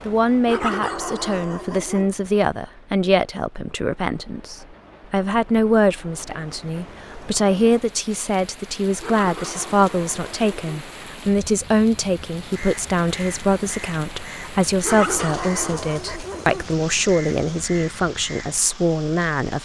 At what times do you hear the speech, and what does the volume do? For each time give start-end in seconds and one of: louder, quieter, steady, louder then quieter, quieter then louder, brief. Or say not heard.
0.1-19.6 steady.